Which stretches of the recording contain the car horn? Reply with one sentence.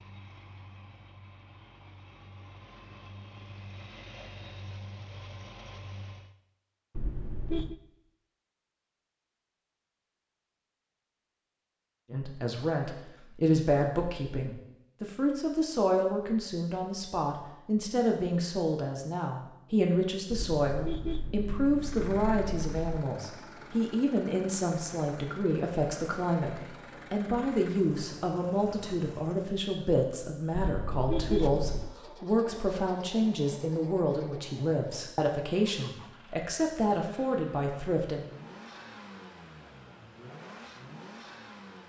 The car horn can be heard from 7.0 to 7.8 s, from 20.3 to 22.8 s and from 30.7 to 31.9 s.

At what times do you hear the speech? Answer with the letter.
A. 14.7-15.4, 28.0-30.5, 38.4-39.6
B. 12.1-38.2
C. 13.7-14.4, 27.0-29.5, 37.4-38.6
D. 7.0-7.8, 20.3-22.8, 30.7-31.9
B.